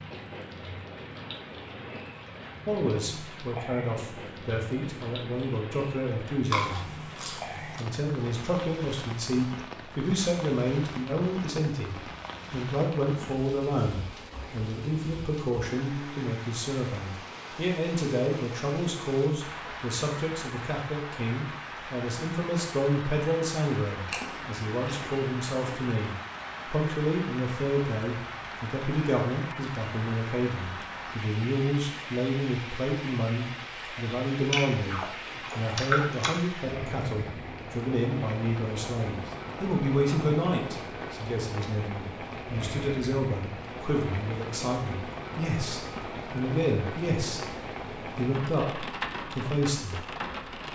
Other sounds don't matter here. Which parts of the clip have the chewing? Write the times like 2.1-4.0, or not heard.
6.5-7.8, 24.1-25.8, 34.4-36.4.